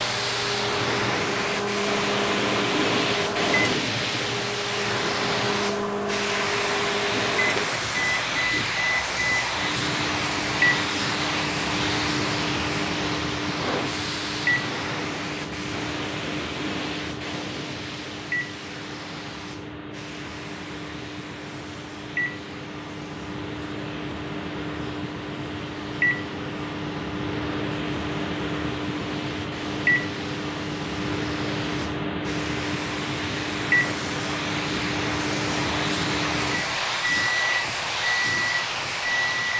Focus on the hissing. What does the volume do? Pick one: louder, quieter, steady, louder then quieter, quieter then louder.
quieter then louder.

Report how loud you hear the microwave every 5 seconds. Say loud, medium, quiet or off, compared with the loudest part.
loud, loud, loud, medium, medium, loud, loud, loud.